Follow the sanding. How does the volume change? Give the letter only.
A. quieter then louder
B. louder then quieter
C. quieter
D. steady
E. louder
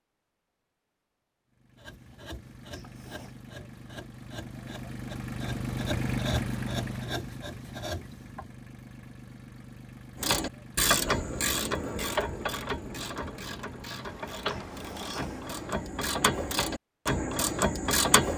E.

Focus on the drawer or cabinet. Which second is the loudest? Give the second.
15 s.